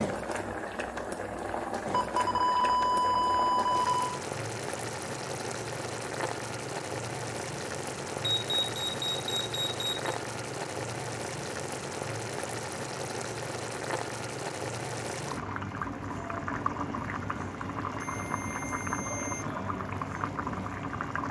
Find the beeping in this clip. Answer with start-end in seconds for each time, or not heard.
1.9-4.2, 7.6-10.2, 18.0-19.4.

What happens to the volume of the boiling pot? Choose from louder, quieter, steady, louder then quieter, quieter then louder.
steady.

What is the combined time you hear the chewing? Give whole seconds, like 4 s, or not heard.
not heard.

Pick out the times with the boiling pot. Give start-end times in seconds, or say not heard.
0.0-21.2.